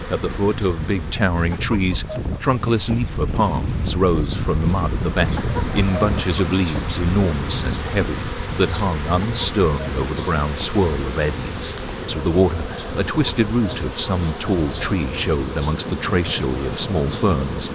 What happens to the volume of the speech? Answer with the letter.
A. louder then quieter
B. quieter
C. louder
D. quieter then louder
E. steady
E.